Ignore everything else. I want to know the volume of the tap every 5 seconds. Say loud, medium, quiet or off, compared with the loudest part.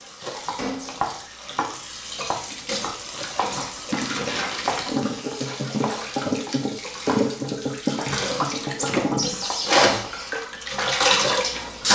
medium, loud, loud.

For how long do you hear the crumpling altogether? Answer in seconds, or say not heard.
2 s.